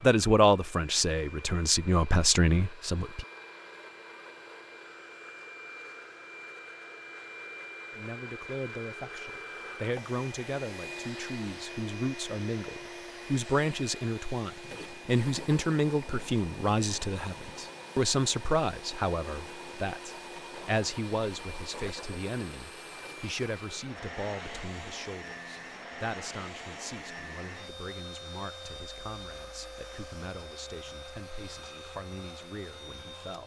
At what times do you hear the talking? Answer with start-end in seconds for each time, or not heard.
0.0-3.2, 7.9-33.4.